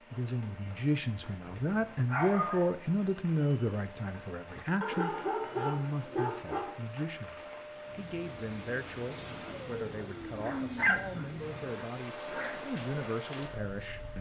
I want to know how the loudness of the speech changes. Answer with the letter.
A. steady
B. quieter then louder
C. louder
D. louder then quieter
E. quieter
E.